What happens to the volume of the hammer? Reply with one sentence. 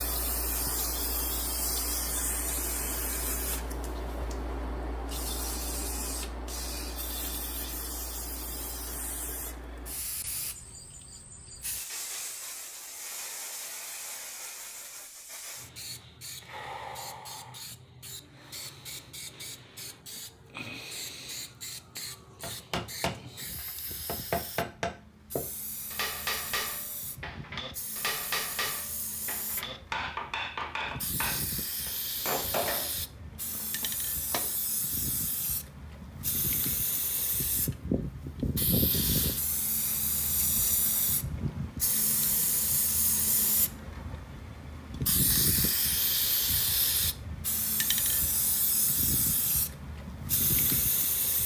The loudness of the hammer stays about the same.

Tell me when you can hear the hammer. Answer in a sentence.
The hammer can be heard from 22.4 to 34.5 s.